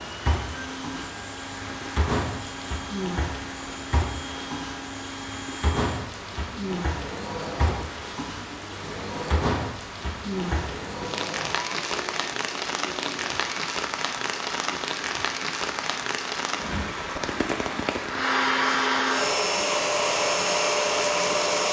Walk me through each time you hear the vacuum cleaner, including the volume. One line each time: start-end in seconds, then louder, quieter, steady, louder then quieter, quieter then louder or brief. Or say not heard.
0.0-21.6 louder.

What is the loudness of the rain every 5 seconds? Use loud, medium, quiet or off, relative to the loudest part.
loud, loud, loud, loud, off.